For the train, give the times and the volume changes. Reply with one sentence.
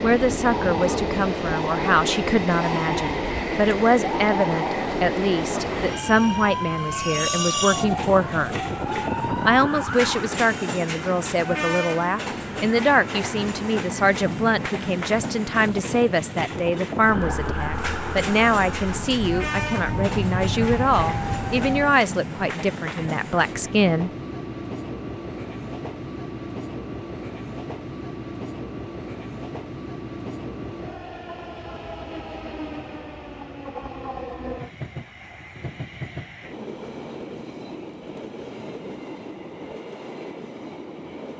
You can hear the train from 0.0 to 41.3 s, getting quieter.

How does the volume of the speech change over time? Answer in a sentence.
The volume of the speech stays about the same.